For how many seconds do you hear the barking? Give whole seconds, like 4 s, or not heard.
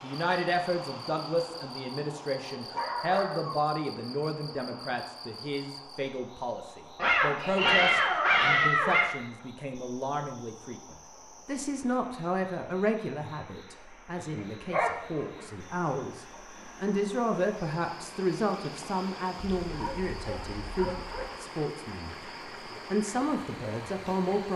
6 s.